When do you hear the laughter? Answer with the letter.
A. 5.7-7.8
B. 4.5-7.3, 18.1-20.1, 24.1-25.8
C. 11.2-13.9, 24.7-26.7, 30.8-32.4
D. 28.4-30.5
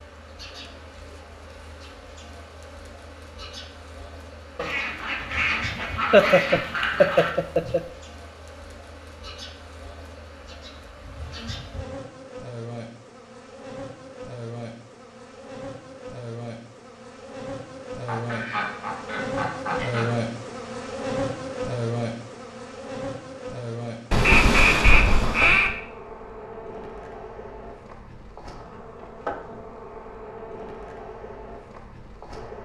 A.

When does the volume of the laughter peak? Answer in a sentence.
The volume of the laughter peaks at 6 seconds.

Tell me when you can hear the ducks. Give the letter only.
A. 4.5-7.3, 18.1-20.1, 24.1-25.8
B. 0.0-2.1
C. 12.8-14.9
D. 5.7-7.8
A.